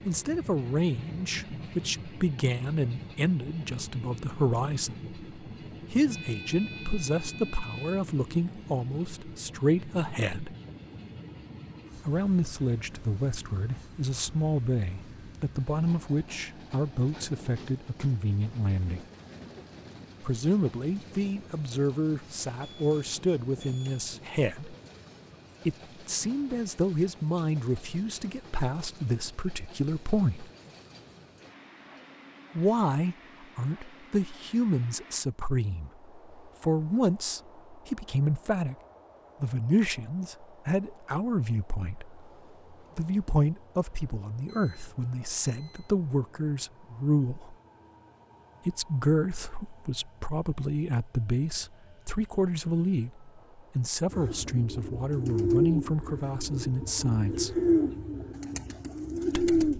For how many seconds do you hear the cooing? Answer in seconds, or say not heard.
6 s.